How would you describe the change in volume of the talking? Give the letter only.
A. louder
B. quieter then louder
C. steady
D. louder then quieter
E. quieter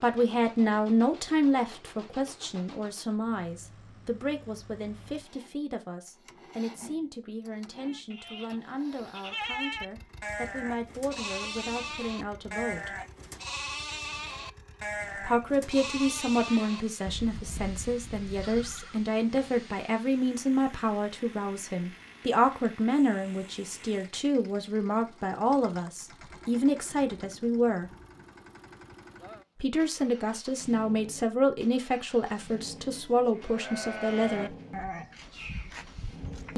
B.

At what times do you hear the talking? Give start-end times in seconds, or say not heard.
0.0-12.9, 15.2-27.9, 29.6-34.5.